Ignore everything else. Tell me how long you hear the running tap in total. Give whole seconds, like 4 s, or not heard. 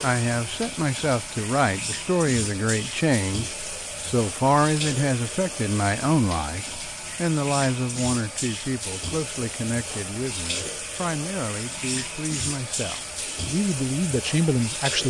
15 s.